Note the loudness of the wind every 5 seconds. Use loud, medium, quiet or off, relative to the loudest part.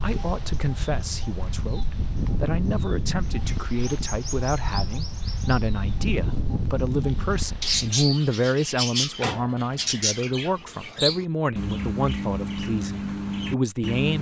loud, loud, off.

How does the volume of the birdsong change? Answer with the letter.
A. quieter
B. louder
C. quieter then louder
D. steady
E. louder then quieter
B.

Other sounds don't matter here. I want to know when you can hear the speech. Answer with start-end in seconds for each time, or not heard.
0.0-14.1.